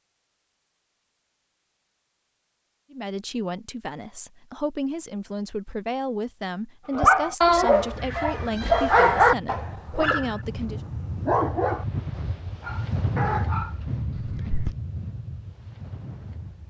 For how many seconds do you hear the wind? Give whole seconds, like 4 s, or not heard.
9 s.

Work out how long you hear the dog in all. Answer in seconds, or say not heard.
7 s.